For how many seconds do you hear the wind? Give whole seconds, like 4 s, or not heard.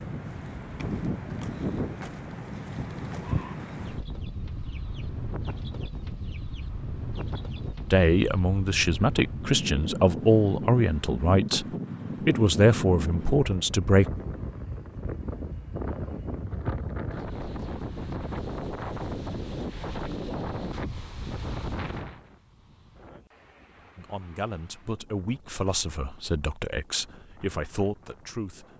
29 s.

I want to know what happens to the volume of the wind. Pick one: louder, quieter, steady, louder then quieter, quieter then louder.
quieter.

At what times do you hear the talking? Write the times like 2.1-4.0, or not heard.
7.9-11.7, 12.2-14.1, 23.9-28.7.